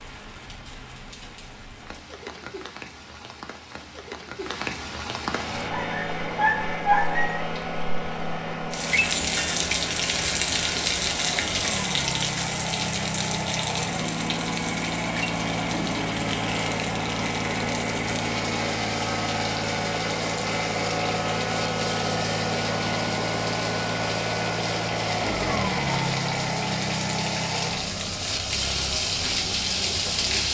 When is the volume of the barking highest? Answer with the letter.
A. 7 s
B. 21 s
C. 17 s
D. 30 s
A.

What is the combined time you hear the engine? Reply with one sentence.
The engine can be heard for 25 seconds in total.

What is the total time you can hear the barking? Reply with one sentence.
You can hear the barking for 2 seconds altogether.